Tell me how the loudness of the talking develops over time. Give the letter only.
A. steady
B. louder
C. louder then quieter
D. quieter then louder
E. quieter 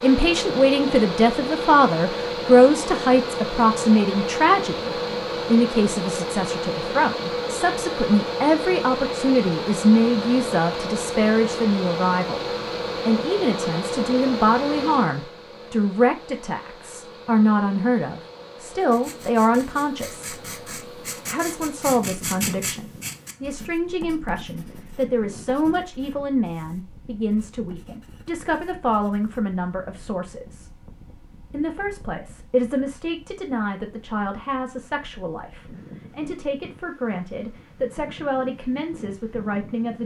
E.